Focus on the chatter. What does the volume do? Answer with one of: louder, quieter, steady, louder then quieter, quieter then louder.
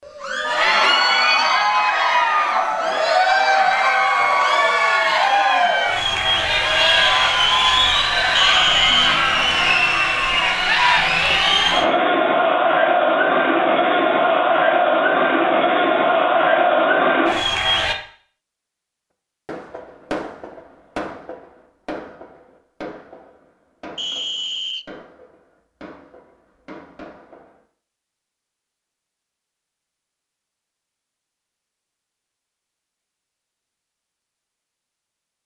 steady.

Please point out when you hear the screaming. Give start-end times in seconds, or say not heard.
not heard.